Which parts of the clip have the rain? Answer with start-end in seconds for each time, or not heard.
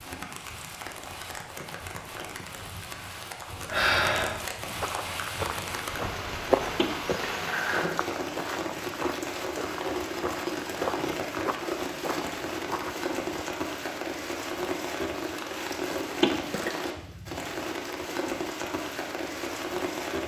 0.0-20.2.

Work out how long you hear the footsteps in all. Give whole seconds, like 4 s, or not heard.
9 s.